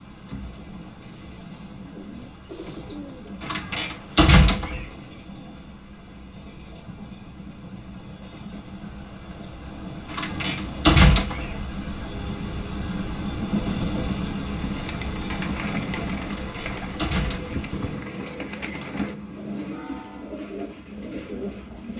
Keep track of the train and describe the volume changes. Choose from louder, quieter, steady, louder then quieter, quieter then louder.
louder then quieter.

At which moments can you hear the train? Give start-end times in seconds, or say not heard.
0.0-21.9.